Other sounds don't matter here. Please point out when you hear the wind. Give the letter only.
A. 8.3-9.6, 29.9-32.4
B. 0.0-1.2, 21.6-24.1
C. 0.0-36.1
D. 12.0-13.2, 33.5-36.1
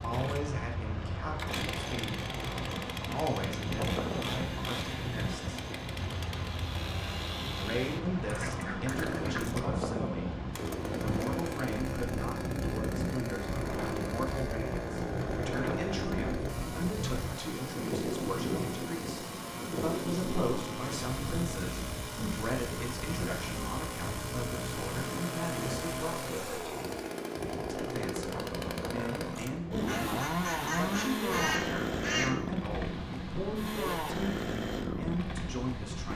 C.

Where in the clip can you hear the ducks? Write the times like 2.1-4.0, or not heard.
8.3-9.6, 29.9-32.4.